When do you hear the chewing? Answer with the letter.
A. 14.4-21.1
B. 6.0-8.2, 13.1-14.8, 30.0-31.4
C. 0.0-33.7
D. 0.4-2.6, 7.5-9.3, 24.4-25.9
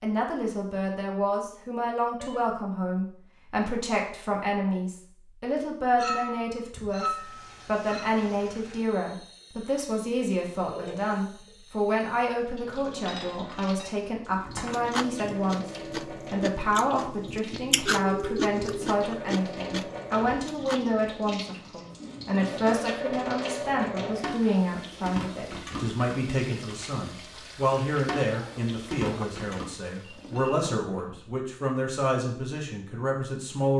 A.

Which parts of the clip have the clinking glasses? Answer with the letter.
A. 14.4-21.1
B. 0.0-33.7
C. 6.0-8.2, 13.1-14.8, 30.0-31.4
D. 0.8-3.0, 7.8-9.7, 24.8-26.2
C.